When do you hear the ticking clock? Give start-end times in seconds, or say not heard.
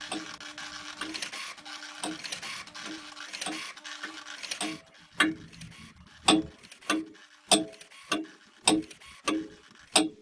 0.1-1.3, 2.0-10.1.